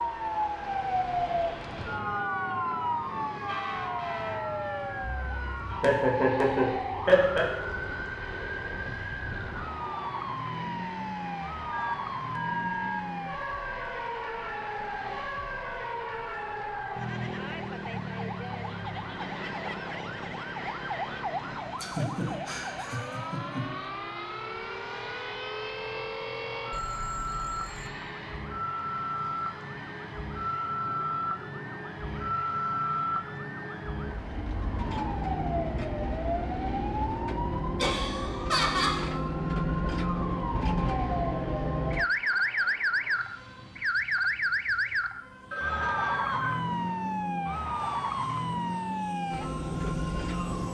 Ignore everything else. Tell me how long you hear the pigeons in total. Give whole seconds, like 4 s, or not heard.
not heard.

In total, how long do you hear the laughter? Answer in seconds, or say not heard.
5 s.